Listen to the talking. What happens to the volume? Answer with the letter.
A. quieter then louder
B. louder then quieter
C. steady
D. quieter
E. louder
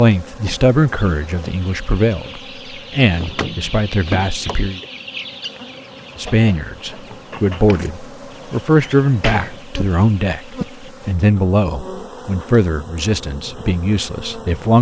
C.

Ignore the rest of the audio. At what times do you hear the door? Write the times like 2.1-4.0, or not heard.
3.1-4.8, 9.0-9.7.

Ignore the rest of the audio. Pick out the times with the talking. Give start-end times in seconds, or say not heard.
0.0-4.8, 6.2-14.7.